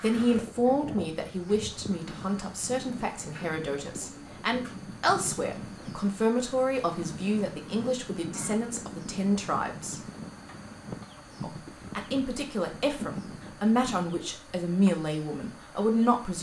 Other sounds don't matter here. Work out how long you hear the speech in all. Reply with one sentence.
The speech can be heard for 15 seconds in total.